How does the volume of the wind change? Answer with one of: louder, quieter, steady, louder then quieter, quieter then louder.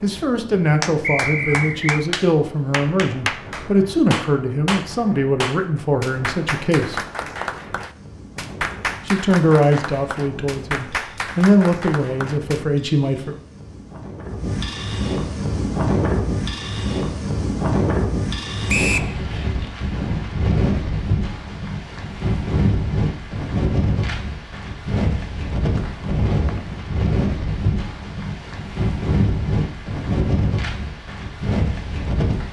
louder.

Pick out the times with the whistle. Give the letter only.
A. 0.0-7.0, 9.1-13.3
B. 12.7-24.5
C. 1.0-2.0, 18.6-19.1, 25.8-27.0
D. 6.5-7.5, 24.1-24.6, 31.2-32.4
C.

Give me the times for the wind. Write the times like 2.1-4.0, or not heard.
0.0-32.4.